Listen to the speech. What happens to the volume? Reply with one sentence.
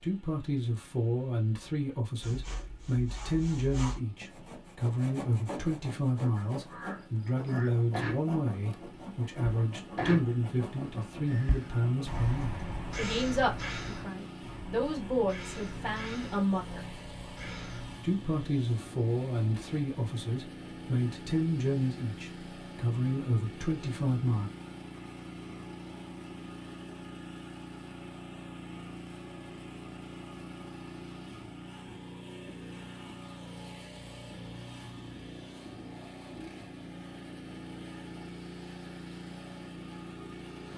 The volume of the speech stays about the same.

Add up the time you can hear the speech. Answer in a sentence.
The speech can be heard for 23 seconds in total.